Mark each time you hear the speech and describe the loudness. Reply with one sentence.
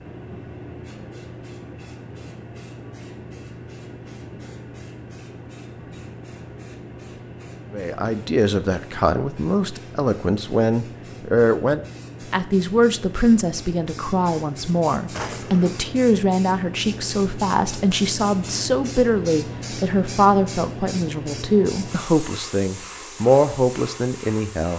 You can hear the speech from 7.7 to 24.7 s, at a steady volume.